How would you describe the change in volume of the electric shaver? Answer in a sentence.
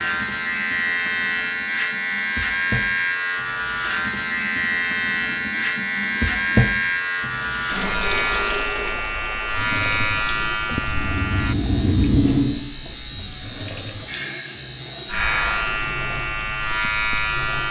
The loudness of the electric shaver stays about the same.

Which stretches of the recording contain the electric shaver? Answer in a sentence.
You can hear the electric shaver from 0.0 to 17.6 s.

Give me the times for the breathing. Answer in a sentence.
You can hear the breathing from 10.8 to 15.7 s.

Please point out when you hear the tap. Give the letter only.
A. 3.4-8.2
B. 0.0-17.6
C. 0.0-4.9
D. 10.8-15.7
B.